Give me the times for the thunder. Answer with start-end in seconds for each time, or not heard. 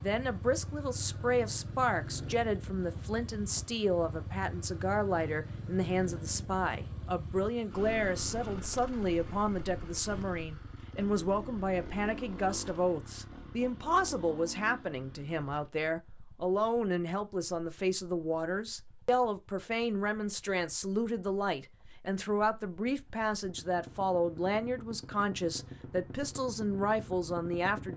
not heard.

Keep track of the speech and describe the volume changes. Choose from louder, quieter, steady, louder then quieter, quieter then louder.
steady.